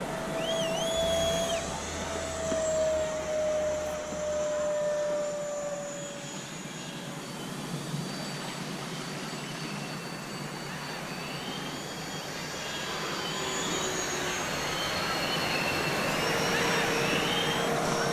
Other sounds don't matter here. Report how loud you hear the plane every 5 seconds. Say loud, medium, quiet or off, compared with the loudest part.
loud, medium, medium, loud.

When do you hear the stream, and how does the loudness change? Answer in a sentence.
The stream can be heard from 8.1 to 18.0 s, getting louder.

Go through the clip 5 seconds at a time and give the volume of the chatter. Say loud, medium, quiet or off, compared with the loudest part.
medium, quiet, medium, loud.